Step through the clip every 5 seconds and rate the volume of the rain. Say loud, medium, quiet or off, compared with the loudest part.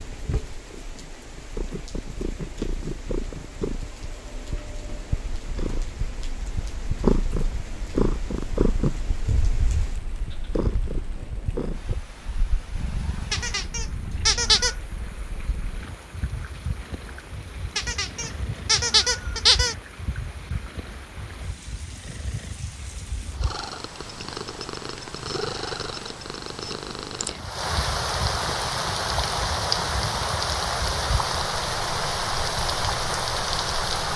quiet, quiet, quiet, quiet, quiet, loud, loud.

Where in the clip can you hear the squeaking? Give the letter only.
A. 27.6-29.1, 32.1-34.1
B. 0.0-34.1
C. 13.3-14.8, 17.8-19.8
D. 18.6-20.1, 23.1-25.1
C.